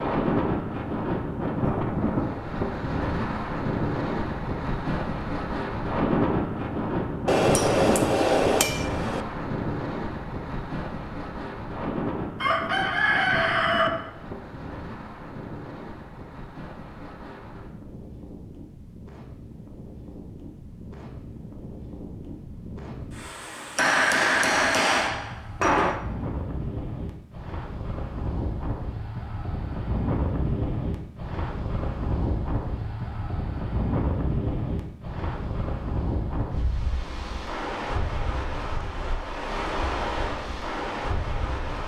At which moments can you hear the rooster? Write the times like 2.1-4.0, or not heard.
12.4-13.9.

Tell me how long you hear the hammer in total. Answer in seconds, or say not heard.
4 s.